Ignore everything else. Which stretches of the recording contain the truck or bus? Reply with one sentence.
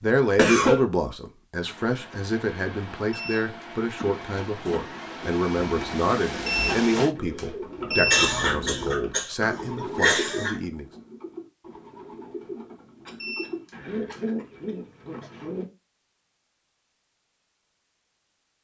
You can hear the truck or bus from 1.6 to 7.2 s.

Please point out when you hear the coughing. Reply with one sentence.
You can hear the coughing from 0.3 to 0.8 s, from 7.8 to 10.6 s and from 13.1 to 15.3 s.